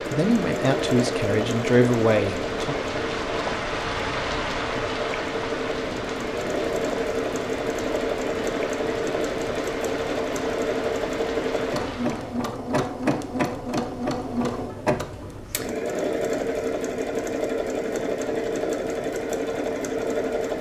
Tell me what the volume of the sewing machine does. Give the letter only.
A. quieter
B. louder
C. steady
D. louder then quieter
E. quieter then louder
C.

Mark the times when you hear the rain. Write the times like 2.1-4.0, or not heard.
0.0-12.4.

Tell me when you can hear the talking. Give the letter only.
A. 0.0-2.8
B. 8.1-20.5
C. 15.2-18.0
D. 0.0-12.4
A.